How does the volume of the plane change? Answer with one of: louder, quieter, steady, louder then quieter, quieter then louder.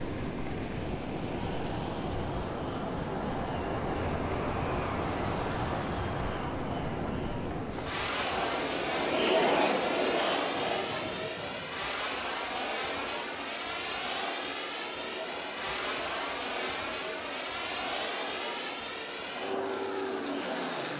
steady.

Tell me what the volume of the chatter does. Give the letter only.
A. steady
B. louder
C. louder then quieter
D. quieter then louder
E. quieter
E.